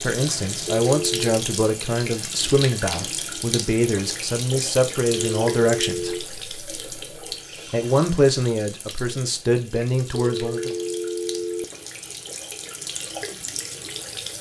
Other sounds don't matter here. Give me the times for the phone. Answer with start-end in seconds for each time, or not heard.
0.7-1.4, 5.1-6.2, 10.2-11.7.